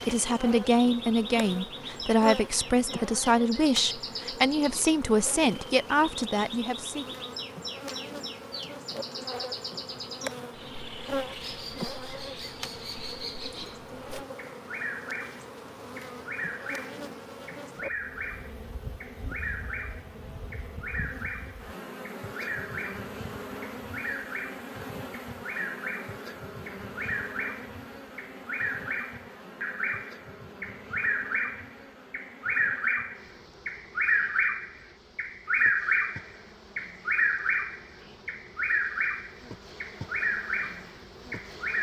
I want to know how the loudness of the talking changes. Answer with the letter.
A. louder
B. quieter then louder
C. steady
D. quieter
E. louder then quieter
C.